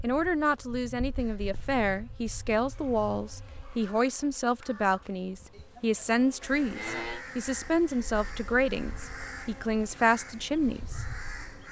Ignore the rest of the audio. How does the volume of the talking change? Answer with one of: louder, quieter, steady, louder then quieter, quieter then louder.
steady.